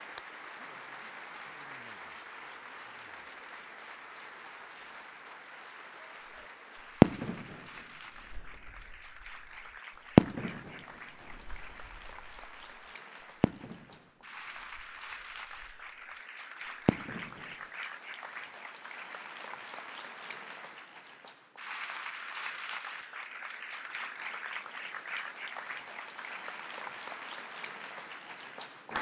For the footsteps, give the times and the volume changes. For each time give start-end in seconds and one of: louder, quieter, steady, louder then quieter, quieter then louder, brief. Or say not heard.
not heard.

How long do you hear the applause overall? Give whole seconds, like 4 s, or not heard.
29 s.